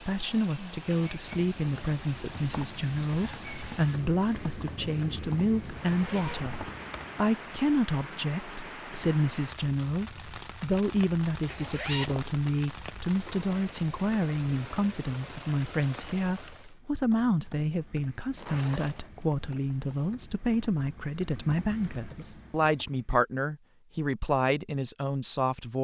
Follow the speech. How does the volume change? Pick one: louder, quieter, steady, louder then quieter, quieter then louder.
steady.